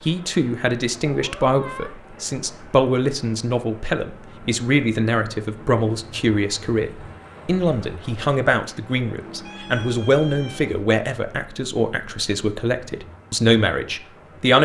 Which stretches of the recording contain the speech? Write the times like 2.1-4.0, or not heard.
0.1-14.6.